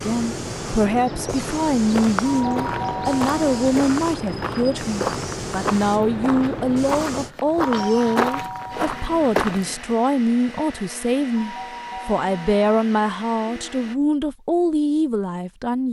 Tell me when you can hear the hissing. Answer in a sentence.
You can hear the hissing from 0.0 to 7.3 s.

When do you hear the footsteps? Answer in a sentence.
You can hear the footsteps from 0.8 to 9.9 s.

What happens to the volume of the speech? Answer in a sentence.
The loudness of the speech stays about the same.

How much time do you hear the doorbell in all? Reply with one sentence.
You can hear the doorbell for 4 seconds altogether.